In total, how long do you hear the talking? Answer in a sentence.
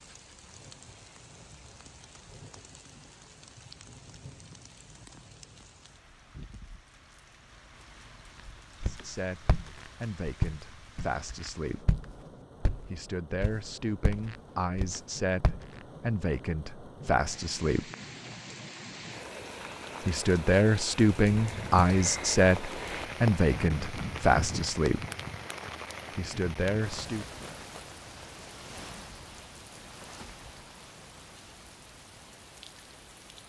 You can hear the talking for 14 seconds altogether.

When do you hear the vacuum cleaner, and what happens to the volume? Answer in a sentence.
You can't hear the vacuum cleaner here.